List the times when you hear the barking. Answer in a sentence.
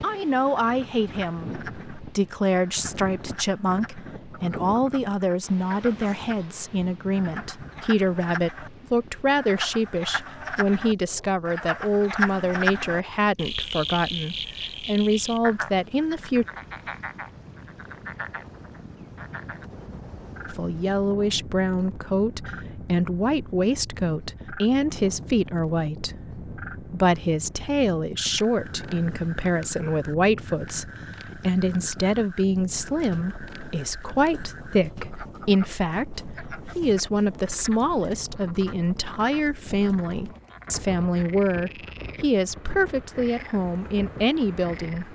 You can't hear the barking here.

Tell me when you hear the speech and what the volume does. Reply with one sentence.
The speech can be heard from 0.0 to 16.4 s, at a steady volume; and from 20.4 to 45.0 s, at a steady volume.